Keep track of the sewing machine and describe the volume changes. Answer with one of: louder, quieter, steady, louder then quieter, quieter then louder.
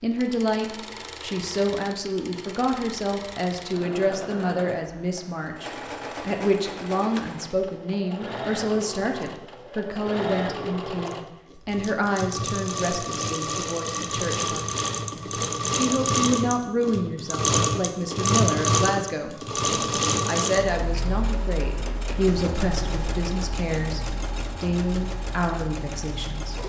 louder then quieter.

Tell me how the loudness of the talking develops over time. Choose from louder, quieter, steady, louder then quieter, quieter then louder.
steady.